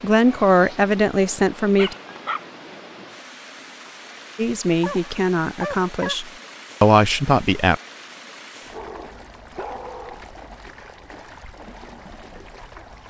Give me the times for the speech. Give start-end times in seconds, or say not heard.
0.0-1.9, 4.3-7.8.